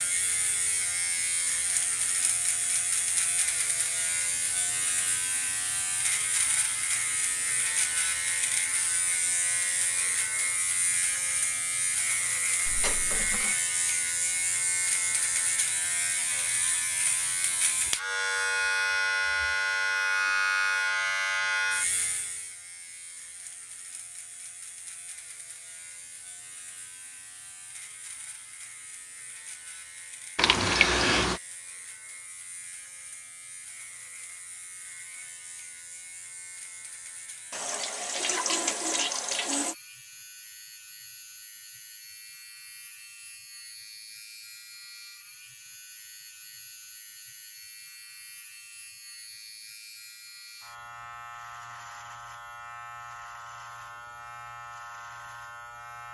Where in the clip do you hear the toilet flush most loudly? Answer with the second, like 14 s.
31 s.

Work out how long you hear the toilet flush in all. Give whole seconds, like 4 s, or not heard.
4 s.